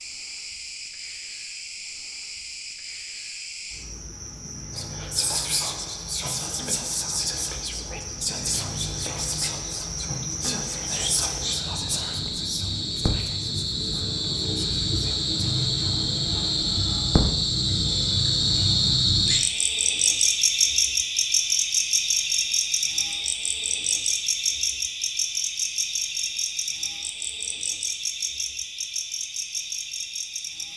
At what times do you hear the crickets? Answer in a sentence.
You can hear the crickets from 0.0 to 30.7 s.